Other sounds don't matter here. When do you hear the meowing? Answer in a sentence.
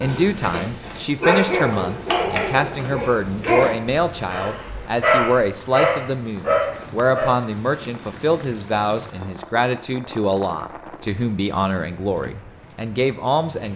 The meowing can't be heard in this clip.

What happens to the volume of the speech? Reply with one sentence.
The volume of the speech stays about the same.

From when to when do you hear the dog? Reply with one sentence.
You can hear the dog from 0.0 to 7.3 s.